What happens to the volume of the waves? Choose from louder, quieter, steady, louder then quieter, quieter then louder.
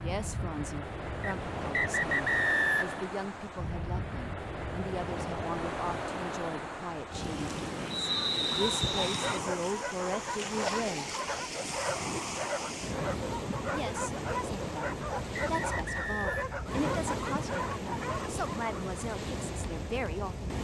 steady.